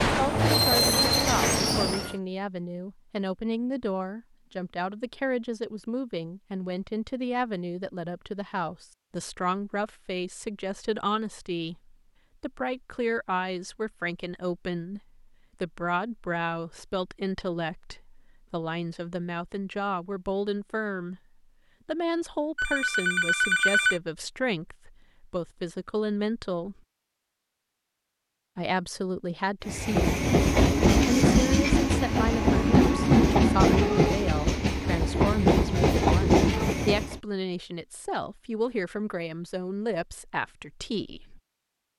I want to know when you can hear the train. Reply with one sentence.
You can hear the train from 0.0 to 2.1 s and from 29.6 to 37.2 s.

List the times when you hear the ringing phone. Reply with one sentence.
You can hear the ringing phone from 22.6 to 24.0 s.